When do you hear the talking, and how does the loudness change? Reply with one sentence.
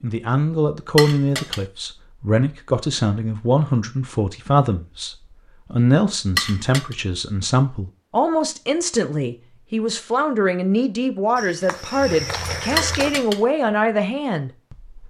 The talking can be heard from 0.0 to 14.9 s, at a steady volume.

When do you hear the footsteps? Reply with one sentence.
The footsteps can be heard from 11.3 to 13.2 s.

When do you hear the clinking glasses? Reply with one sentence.
You can hear the clinking glasses from 0.9 to 1.6 s, from 6.3 to 7.0 s and from 12.8 to 13.4 s.